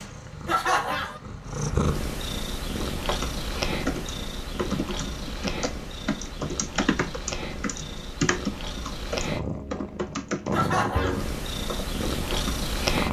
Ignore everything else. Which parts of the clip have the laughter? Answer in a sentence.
The laughter can be heard from 0.5 to 1.2 s and from 10.5 to 11.2 s.